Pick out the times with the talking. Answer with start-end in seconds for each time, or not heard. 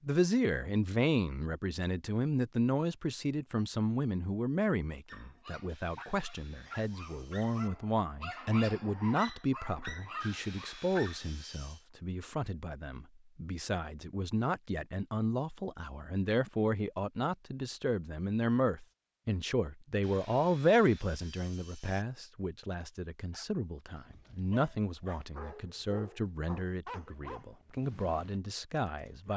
0.0-29.3.